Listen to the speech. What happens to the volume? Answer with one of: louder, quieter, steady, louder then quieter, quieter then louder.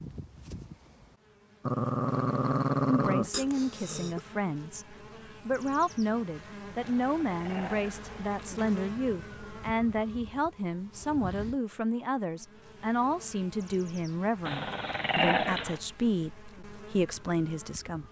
steady.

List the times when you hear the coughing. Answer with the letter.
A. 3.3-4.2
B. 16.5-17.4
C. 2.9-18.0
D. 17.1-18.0
A.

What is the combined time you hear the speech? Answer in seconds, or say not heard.
15 s.